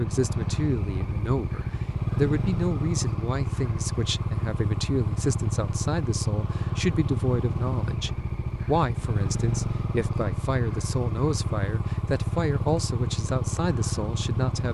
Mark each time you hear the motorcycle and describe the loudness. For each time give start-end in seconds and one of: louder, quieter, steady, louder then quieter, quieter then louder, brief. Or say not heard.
0.0-14.6 steady.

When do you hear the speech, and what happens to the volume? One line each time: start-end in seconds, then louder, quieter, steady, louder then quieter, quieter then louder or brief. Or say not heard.
0.0-14.6 steady.